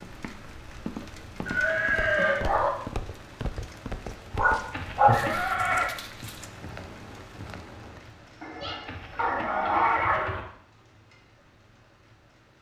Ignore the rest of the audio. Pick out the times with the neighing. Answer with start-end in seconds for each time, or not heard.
1.4-2.5, 4.7-5.9, 8.8-10.4.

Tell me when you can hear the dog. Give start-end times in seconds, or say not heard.
1.6-2.7, 4.3-6.5, 8.4-10.2.